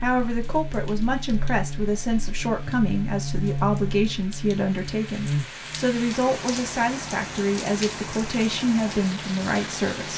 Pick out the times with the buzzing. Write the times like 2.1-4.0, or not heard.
0.0-10.1.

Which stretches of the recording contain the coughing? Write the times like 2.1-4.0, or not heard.
not heard.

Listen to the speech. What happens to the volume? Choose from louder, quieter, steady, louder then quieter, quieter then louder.
steady.